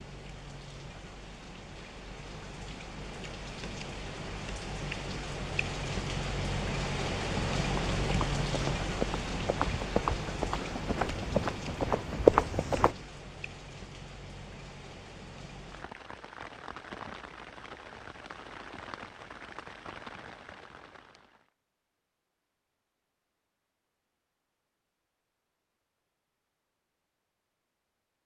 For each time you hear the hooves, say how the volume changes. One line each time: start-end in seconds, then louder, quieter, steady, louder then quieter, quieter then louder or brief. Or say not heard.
7.5-12.9 louder.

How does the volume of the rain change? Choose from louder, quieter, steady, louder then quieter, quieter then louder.
louder then quieter.